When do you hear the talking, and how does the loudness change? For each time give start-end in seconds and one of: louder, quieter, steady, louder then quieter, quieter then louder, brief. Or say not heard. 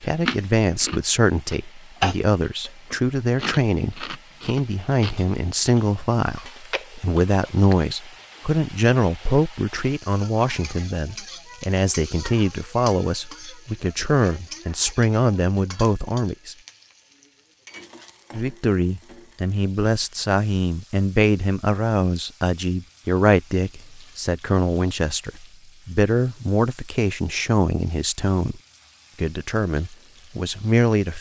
0.0-16.6 steady
18.3-28.6 steady
29.2-31.1 brief.